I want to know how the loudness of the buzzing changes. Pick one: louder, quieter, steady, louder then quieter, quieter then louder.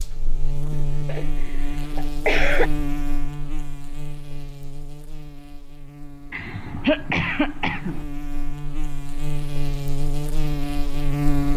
quieter then louder.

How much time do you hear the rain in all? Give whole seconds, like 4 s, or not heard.
not heard.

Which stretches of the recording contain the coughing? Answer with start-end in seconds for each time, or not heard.
0.7-2.7, 6.3-8.1.